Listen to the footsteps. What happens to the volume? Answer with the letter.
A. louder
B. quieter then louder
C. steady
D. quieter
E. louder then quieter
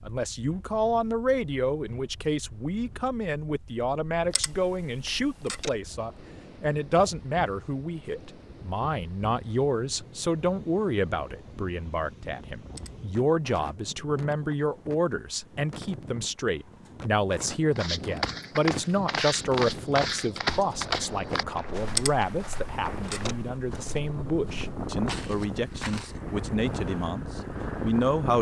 B.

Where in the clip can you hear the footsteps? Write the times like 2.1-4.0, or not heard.
17.8-26.2.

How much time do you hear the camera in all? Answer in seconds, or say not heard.
3 s.